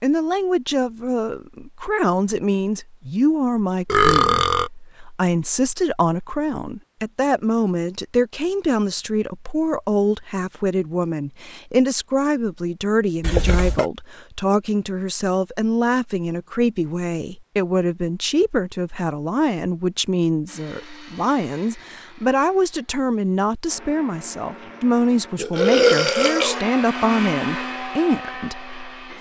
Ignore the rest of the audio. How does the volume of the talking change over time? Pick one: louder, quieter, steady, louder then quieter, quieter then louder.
steady.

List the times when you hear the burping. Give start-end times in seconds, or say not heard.
3.9-4.7, 13.2-13.8, 25.4-26.6.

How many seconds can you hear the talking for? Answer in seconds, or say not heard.
29 s.